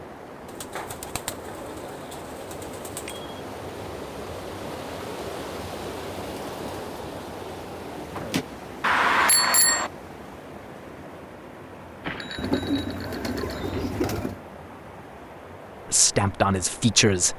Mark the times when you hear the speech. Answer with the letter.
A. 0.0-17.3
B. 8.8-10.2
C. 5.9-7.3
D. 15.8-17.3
D.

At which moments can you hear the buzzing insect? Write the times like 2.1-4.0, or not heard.
not heard.